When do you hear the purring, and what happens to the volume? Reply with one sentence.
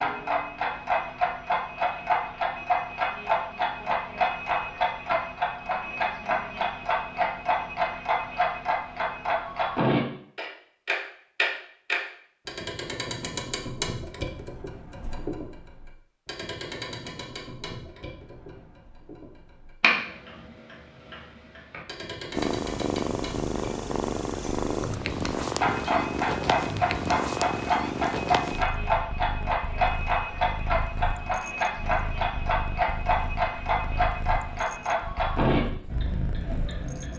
You can hear the purring from 22.3 to 37.1 s, getting quieter.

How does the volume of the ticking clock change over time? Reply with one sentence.
The loudness of the ticking clock goes down, then up.